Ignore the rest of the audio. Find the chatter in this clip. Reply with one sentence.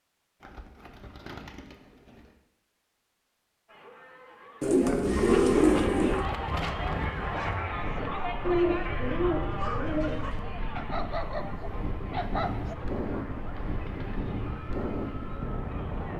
The chatter can be heard from 3.6 to 16.1 s.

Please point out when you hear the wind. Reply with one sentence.
The wind can be heard from 4.8 to 16.1 s.